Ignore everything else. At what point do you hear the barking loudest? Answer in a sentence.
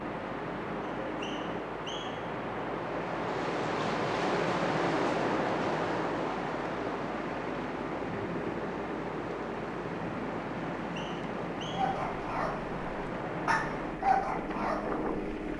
The volume of the barking peaks at 14 seconds.